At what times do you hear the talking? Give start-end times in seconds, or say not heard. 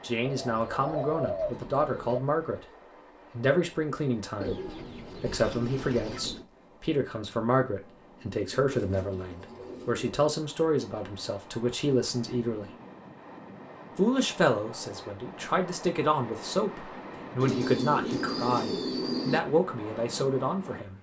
0.0-2.6, 3.3-12.8, 13.9-20.9.